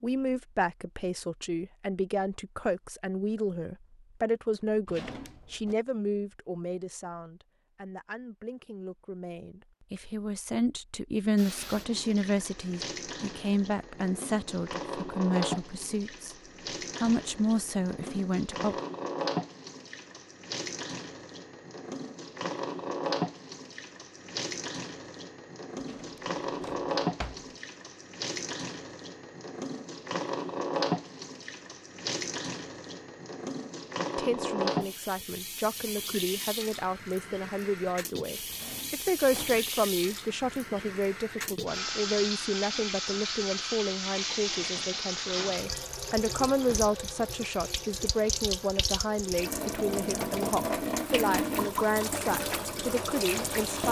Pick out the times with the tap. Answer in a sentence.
The tap can be heard from 11.3 to 53.8 s.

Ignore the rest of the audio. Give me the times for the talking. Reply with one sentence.
You can hear the talking from 0.0 to 16.4 s, from 16.9 to 18.8 s and from 34.1 to 53.8 s.